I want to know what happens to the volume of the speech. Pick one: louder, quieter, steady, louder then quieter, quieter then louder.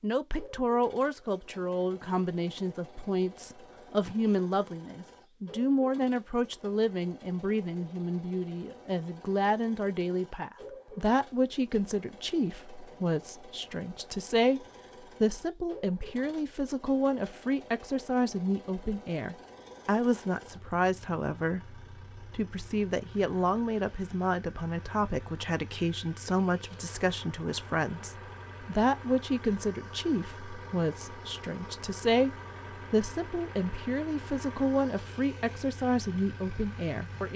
steady.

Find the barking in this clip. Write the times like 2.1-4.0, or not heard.
not heard.